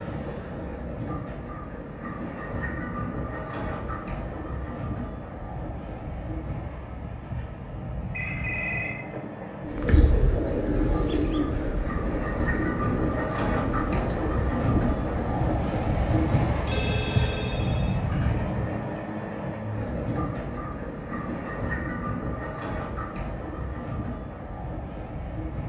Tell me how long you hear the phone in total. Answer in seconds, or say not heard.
3 s.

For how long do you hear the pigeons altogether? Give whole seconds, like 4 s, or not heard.
6 s.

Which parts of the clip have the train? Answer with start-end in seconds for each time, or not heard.
0.0-25.6.